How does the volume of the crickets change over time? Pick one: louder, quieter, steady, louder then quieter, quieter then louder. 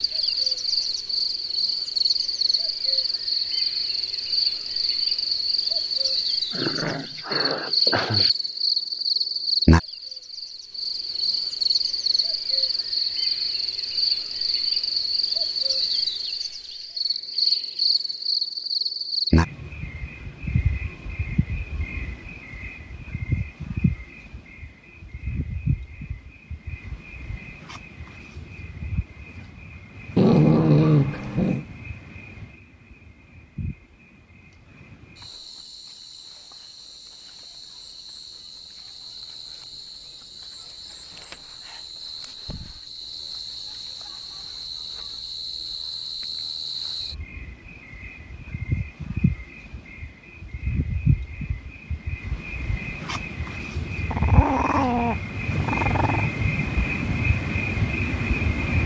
quieter then louder.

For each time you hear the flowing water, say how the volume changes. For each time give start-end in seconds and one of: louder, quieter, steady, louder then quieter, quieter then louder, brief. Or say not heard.
not heard.